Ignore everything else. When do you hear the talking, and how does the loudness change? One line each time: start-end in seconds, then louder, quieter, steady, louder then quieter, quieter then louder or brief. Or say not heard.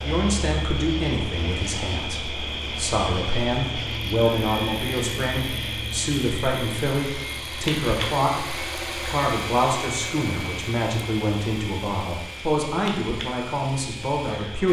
0.0-14.6 steady.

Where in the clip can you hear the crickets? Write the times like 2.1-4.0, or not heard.
0.0-14.6.